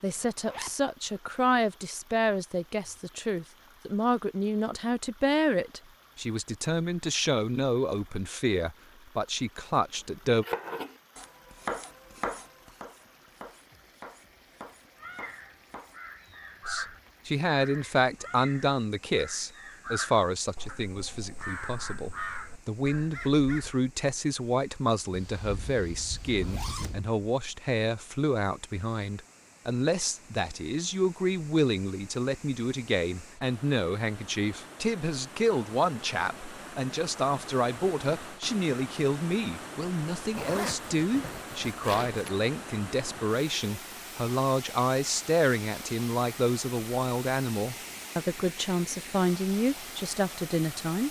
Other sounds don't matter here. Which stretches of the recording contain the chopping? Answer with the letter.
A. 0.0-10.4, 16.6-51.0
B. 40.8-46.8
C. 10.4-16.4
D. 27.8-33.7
C.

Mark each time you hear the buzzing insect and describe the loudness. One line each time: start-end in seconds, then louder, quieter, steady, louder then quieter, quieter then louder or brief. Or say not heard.
not heard.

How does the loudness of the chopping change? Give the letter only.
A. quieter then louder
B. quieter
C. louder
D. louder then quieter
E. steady
B.